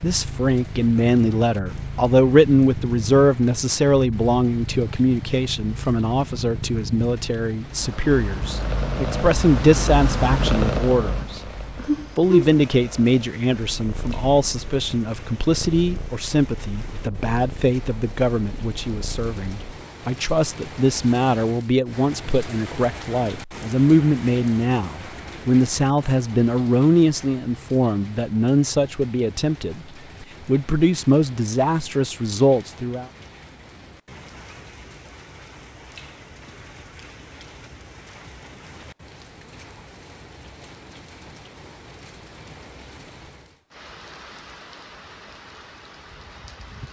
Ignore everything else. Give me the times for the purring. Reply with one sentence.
You can hear the purring from 0.0 to 19.9 s.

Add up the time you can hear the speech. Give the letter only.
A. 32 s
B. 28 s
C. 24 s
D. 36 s
A.